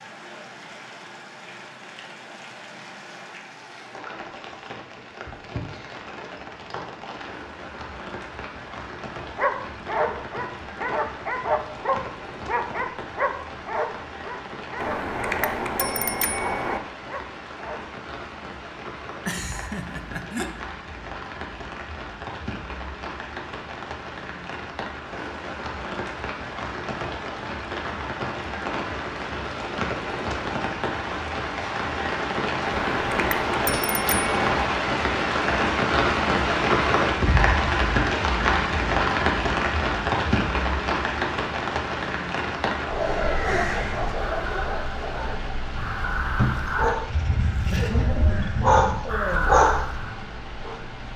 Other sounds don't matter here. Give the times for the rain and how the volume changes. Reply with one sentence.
You can hear the rain from 0.0 to 51.1 s, getting louder then quieter.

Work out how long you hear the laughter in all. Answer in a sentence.
You can hear the laughter for 3 seconds altogether.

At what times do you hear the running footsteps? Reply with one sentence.
You can't hear the running footsteps here.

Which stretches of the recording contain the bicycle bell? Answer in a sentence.
The bicycle bell can be heard from 14.8 to 16.8 s and from 32.6 to 34.6 s.